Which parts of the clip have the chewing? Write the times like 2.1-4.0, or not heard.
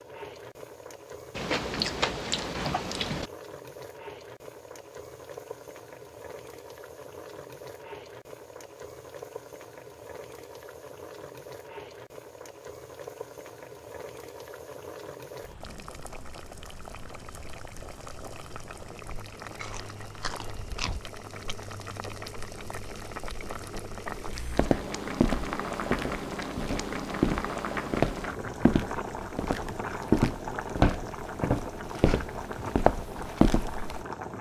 1.4-3.3, 19.6-21.0.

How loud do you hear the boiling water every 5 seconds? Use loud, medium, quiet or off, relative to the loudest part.
medium, medium, medium, medium, medium, loud, loud.